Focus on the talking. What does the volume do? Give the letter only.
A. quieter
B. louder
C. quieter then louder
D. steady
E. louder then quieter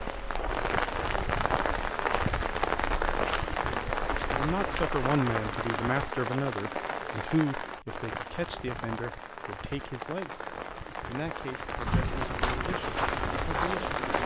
A.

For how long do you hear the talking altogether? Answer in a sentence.
The talking can be heard for 10 seconds in total.